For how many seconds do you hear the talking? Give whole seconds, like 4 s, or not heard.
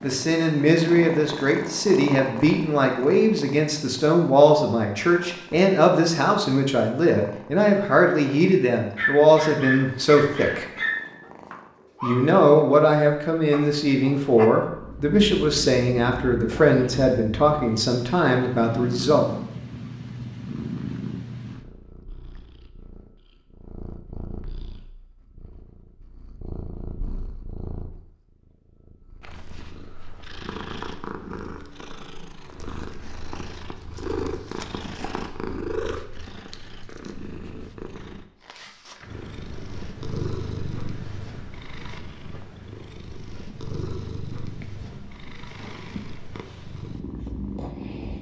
18 s.